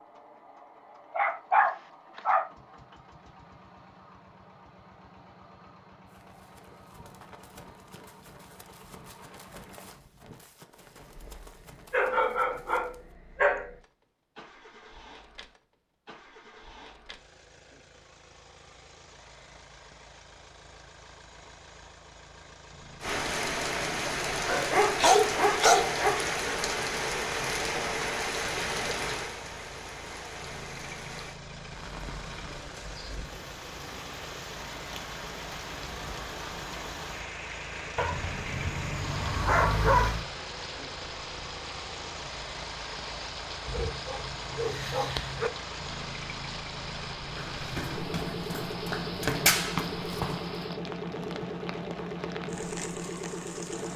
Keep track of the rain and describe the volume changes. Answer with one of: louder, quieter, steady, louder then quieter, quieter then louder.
quieter.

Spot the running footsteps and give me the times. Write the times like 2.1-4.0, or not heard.
6.1-13.2, 47.1-50.7.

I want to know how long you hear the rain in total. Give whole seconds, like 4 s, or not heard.
31 s.